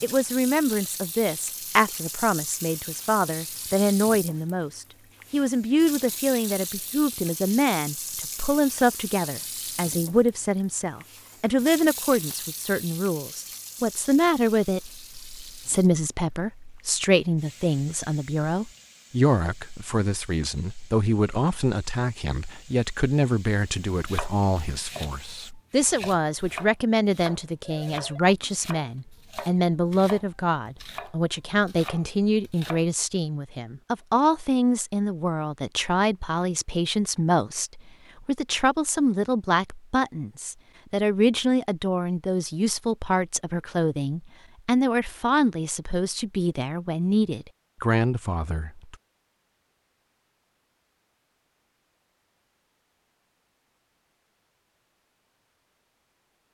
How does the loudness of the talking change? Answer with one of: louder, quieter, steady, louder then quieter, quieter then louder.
steady.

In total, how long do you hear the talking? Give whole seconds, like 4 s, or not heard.
49 s.